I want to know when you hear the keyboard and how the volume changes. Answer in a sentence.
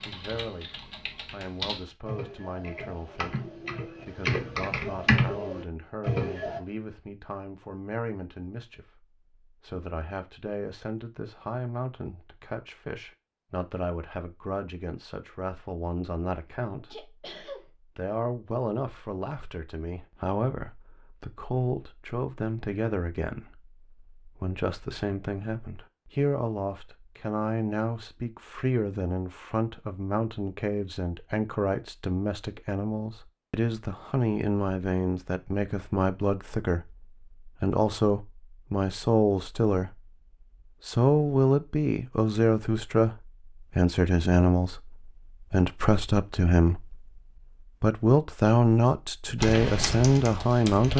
You can hear the keyboard from 0.0 to 6.6 s, getting louder; and briefly from 49.4 to 50.9 s.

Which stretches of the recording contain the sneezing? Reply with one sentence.
You can hear the sneezing from 16.8 to 17.6 s.